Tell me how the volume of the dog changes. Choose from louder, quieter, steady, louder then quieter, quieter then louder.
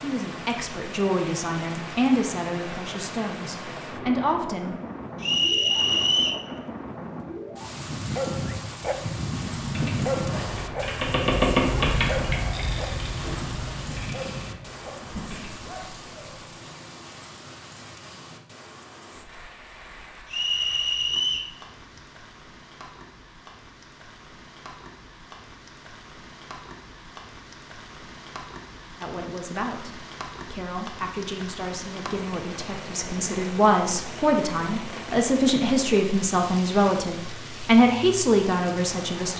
quieter.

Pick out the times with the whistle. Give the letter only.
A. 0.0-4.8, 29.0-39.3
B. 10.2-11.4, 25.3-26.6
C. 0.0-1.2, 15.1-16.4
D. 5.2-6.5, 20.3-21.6
D.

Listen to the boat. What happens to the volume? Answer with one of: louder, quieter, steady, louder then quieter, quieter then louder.
louder then quieter.